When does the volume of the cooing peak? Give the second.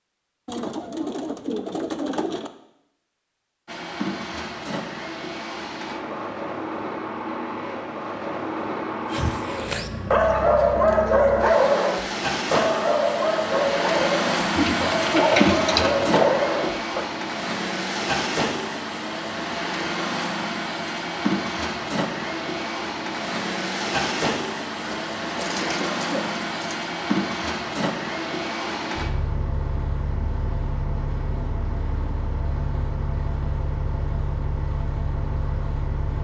15 s.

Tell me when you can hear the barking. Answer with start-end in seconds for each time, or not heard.
9.1-17.1.